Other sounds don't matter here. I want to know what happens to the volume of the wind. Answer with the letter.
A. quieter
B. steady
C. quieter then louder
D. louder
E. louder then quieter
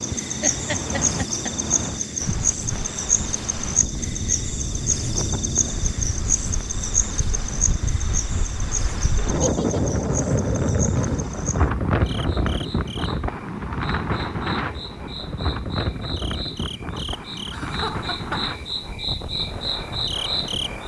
E.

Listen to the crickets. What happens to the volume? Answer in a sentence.
The volume of the crickets goes down, then up.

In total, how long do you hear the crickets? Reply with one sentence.
You can hear the crickets for 21 seconds altogether.